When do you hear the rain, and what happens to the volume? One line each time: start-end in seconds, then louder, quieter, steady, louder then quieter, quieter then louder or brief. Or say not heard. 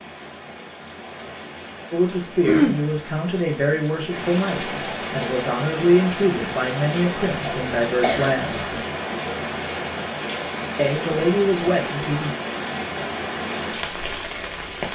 0.0-14.8 louder.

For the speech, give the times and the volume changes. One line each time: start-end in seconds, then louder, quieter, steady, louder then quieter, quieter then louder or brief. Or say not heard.
1.9-8.8 steady
10.8-12.3 brief.